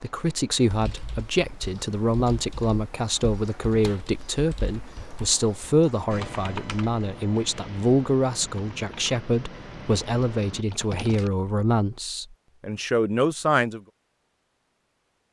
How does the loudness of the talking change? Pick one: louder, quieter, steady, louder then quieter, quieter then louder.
steady.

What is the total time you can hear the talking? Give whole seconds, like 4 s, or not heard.
14 s.